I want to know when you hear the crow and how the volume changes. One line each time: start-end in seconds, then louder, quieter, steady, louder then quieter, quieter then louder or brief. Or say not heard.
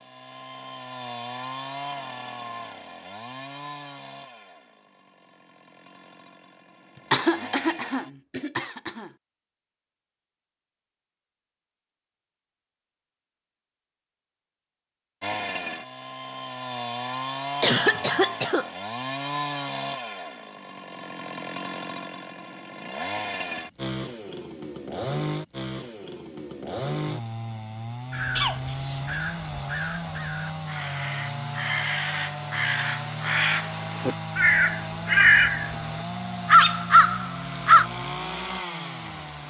28.1-37.9 louder.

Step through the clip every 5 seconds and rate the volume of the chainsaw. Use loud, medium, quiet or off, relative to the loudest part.
medium, quiet, off, loud, loud, loud, loud, loud.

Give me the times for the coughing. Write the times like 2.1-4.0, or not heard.
7.1-9.1, 17.6-18.6, 28.4-29.0.